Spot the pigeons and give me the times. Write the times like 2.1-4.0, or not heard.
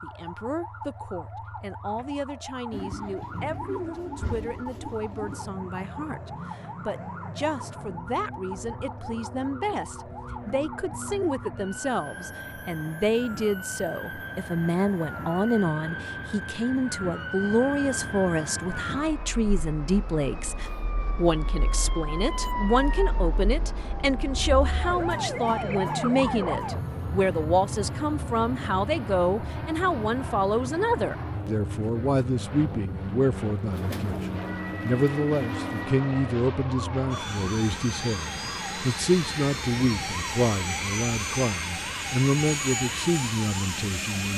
2.7-5.4, 33.7-35.9.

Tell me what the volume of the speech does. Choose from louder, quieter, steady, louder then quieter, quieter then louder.
louder.